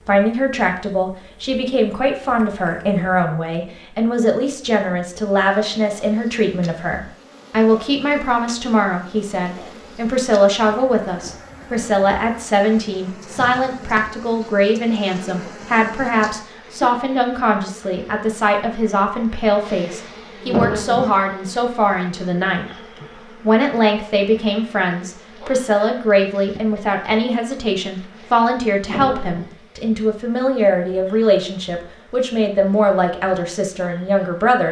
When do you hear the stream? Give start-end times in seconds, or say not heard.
not heard.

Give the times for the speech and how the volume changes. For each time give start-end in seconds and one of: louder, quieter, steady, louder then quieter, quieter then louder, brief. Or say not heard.
0.1-22.6 steady
23.4-34.6 steady.